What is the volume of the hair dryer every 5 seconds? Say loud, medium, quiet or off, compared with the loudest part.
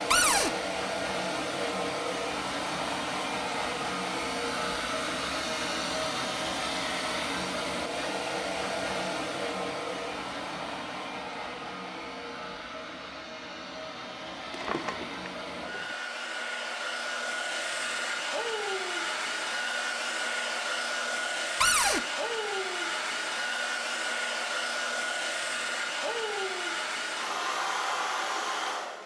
loud, loud, medium, loud, loud, loud.